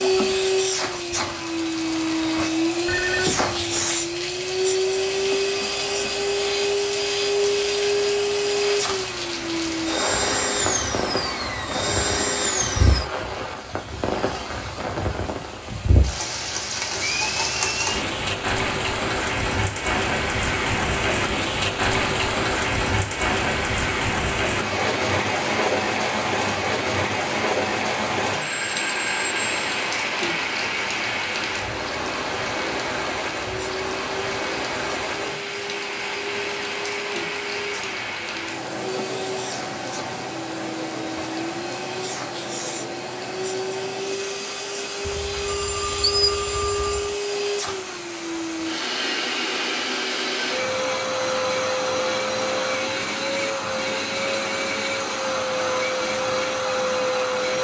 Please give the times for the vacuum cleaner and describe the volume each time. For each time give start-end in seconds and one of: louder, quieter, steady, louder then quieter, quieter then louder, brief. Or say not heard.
0.0-13.1 steady
33.5-57.5 louder.